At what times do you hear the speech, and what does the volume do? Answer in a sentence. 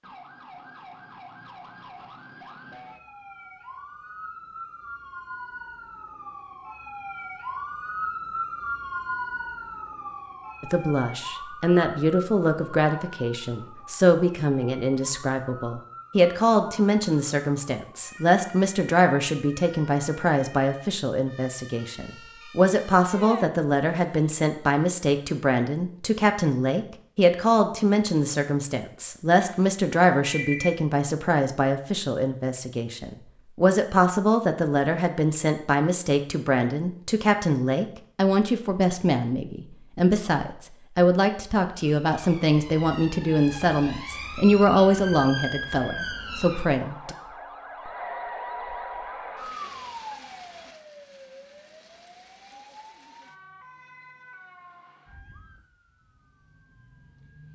The speech can be heard from 10.6 to 47.1 s, at a steady volume.